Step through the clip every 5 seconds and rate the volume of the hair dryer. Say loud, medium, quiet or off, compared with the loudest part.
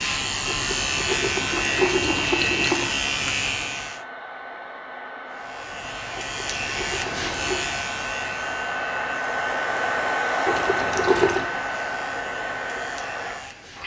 medium, loud, loud.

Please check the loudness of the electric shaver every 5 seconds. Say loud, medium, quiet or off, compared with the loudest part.
loud, medium, quiet.